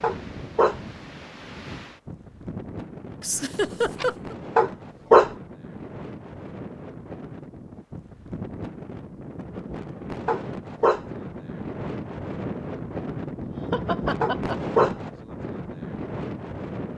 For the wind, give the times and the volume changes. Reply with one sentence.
The wind can be heard from 0.0 to 16.9 s, getting louder.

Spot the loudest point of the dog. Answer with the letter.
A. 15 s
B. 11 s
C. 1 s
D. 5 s
D.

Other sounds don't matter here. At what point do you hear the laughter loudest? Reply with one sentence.
The loudest moment of the laughter is at 4 seconds.